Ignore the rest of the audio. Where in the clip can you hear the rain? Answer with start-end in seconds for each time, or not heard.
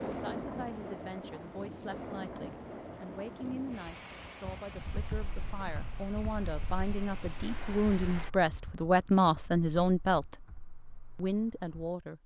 0.0-8.3.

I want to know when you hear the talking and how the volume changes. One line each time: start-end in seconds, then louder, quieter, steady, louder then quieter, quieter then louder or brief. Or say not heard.
0.0-10.4 louder
11.2-12.2 brief.